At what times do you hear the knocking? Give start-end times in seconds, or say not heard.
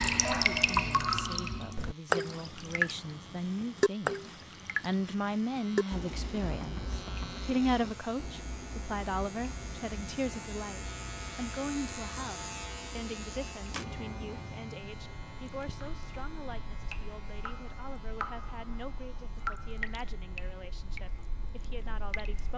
6.5-7.5.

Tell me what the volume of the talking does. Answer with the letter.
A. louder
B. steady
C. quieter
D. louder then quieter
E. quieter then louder
D.